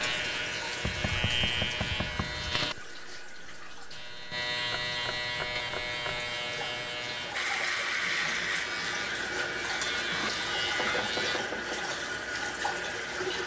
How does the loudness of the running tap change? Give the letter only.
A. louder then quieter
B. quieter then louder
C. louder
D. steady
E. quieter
B.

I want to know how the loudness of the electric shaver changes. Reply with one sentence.
The loudness of the electric shaver stays about the same.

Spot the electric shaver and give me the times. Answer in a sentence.
The electric shaver can be heard from 0.0 to 11.4 s.